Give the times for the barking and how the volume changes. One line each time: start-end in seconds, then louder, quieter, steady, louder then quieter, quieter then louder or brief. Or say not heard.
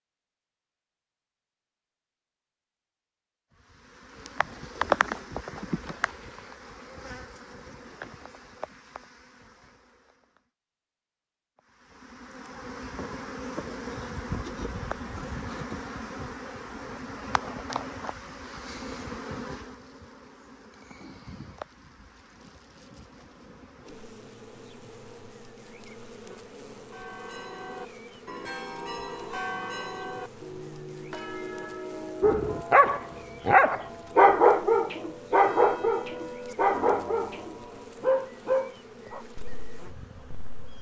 32.2-40.6 quieter.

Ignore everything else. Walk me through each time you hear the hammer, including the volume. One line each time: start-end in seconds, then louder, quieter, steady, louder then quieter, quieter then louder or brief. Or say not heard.
not heard.